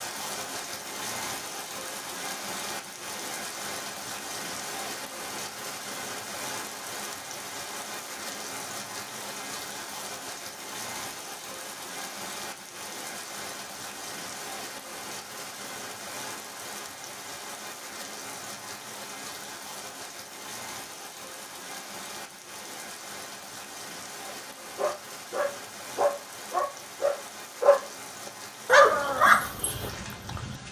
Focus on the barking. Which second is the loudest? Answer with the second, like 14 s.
29 s.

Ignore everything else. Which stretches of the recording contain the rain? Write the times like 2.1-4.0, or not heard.
0.0-30.6.